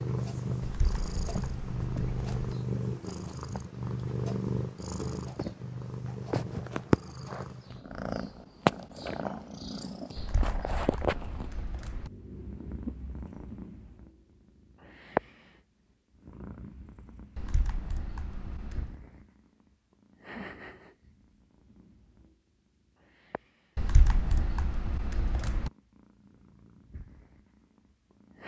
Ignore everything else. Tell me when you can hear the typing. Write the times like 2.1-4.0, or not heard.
0.6-2.5, 10.2-12.1, 17.4-18.9, 23.8-25.7.